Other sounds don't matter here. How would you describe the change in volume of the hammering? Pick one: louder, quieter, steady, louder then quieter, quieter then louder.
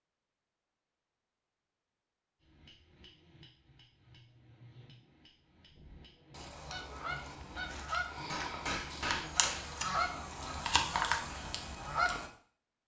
louder.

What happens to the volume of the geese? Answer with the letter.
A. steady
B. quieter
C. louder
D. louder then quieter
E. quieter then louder
C.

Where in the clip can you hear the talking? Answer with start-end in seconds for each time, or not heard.
not heard.